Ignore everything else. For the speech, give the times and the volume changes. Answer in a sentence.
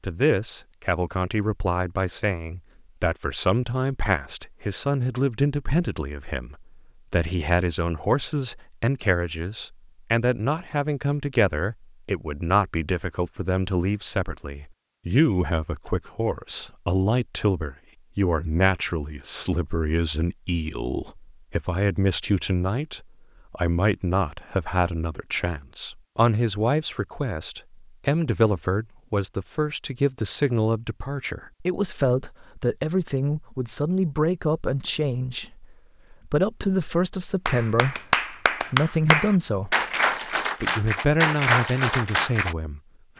The speech can be heard from 0.0 to 39.9 s, at a steady volume; and briefly from 40.6 to 42.8 s.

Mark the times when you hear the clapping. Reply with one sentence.
You can hear the clapping from 37.5 to 42.5 s.